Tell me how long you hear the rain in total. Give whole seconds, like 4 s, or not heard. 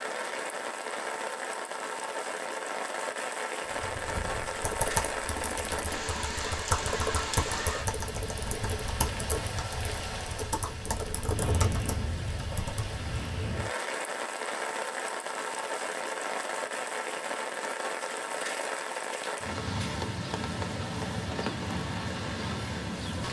23 s.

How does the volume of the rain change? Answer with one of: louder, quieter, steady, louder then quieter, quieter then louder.
steady.